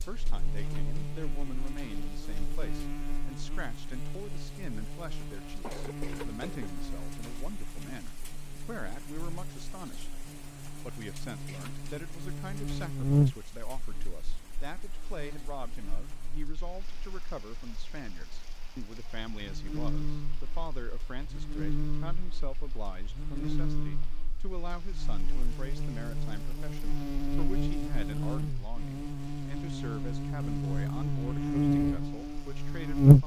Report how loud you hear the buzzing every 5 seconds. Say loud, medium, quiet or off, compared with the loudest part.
quiet, quiet, medium, quiet, quiet, quiet, loud.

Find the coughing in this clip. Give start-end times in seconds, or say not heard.
5.6-6.7.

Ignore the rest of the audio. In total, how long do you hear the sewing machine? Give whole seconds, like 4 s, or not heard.
not heard.